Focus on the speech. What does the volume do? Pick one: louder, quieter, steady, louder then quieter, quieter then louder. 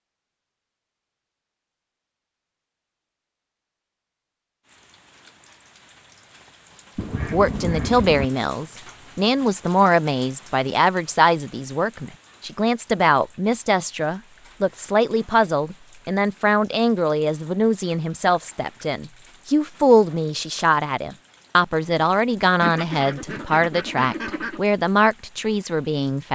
steady.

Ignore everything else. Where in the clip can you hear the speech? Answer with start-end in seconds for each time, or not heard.
7.3-26.3.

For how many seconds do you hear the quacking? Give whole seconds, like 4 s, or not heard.
3 s.